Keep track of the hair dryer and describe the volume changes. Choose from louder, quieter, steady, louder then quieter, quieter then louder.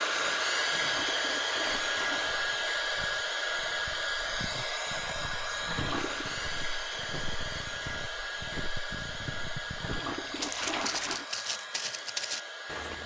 quieter.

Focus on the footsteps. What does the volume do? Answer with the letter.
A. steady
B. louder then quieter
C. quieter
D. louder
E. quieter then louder
D.